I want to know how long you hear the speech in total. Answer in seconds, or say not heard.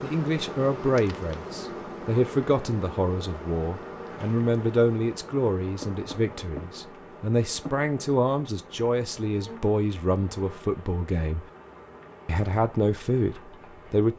13 s.